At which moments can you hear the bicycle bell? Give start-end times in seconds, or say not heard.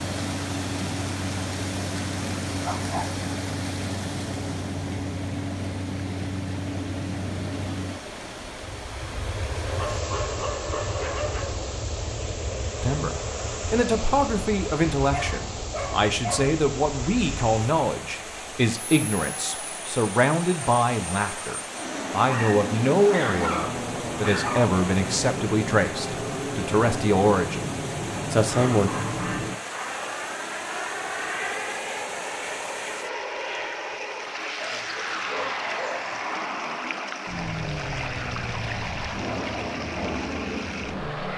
not heard.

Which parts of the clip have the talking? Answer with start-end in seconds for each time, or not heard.
12.8-28.9.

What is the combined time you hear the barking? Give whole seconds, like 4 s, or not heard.
10 s.